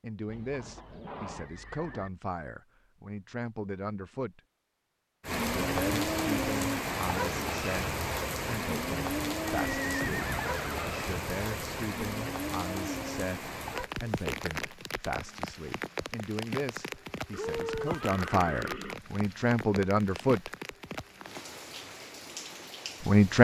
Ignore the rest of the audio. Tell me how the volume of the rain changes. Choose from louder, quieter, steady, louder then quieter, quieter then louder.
quieter.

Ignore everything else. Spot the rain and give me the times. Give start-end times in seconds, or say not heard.
5.2-23.3.